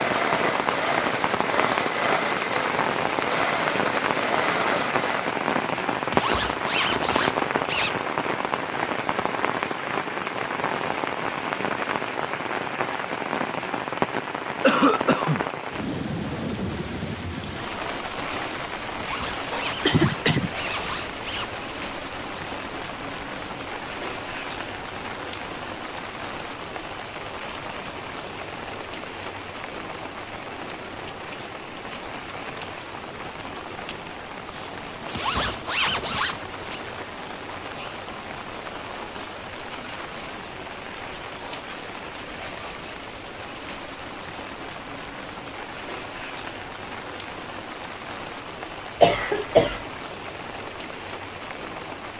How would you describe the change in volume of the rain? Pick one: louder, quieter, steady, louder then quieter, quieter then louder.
quieter.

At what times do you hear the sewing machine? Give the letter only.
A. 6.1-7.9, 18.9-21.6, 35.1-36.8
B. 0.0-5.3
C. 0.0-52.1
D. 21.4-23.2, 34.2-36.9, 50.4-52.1
B.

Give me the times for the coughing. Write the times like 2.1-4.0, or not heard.
14.6-15.4, 19.9-20.5, 49.0-49.8.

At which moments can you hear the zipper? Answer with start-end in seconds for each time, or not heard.
6.1-7.9, 18.9-21.6, 35.1-36.8.